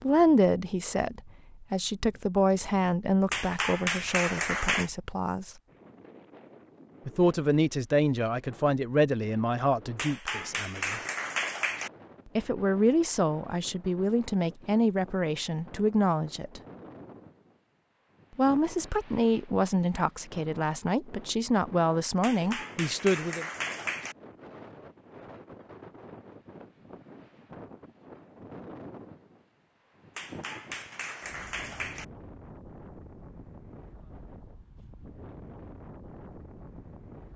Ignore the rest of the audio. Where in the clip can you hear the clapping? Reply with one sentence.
You can hear the clapping from 3.3 to 4.9 s, from 9.9 to 11.9 s, from 22.2 to 24.1 s and from 30.1 to 32.0 s.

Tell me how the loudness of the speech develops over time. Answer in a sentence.
The loudness of the speech stays about the same.